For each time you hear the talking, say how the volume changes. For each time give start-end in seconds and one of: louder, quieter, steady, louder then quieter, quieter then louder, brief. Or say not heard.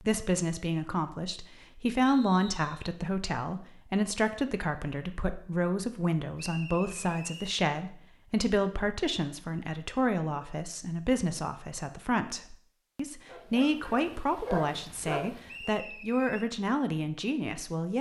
0.0-17.9 steady.